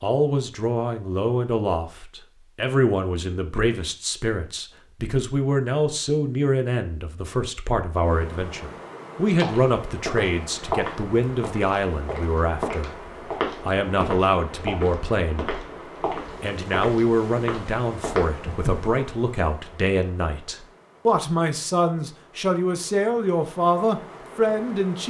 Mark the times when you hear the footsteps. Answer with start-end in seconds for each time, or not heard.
9.4-18.8.